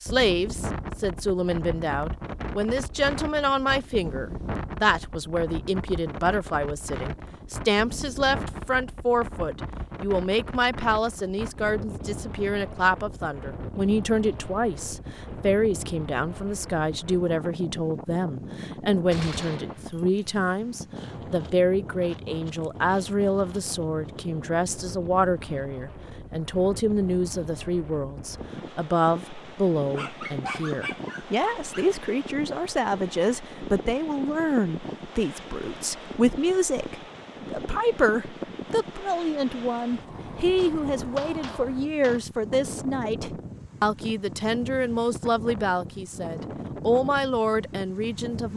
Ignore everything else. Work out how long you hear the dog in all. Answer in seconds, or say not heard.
2 s.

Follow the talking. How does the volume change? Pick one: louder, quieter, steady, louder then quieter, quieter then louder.
steady.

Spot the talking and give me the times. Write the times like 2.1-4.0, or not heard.
0.0-48.5.